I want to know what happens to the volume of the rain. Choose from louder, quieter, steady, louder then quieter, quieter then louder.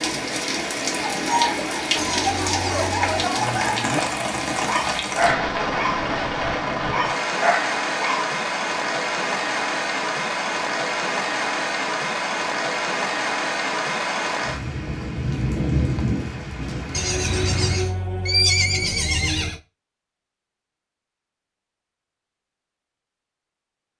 steady.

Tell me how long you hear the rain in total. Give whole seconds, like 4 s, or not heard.
18 s.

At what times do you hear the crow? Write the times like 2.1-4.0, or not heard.
not heard.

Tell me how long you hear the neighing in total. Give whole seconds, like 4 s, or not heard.
4 s.